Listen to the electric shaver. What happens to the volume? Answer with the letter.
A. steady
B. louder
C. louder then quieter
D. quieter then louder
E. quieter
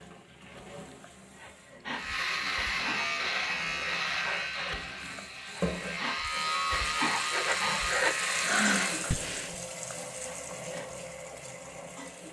D.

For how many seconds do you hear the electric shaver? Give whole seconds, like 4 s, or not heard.
7 s.